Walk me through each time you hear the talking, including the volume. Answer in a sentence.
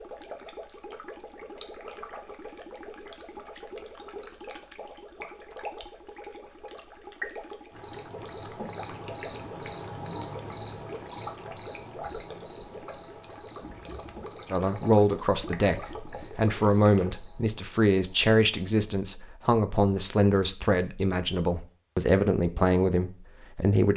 You can hear the talking from 14.5 to 23.9 s, at a steady volume.